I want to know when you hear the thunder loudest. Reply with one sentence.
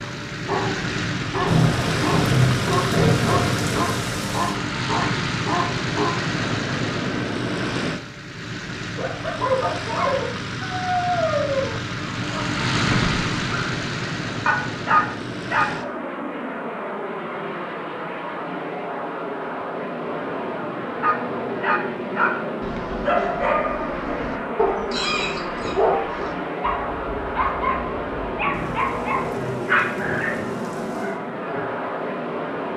The volume of the thunder peaks at 2 seconds.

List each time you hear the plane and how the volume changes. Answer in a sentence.
You can hear the plane from 0.0 to 32.7 s, at a steady volume.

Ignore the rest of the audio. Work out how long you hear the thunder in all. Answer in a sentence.
The thunder can be heard for 6 seconds in total.